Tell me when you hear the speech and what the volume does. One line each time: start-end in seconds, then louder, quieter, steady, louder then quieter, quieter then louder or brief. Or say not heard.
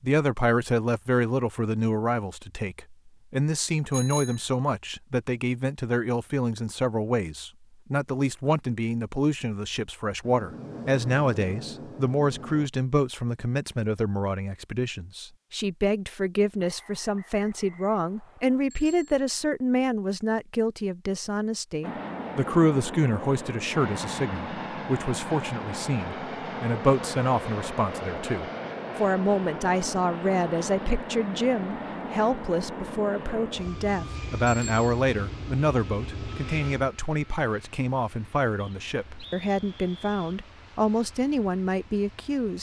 0.0-42.5 steady.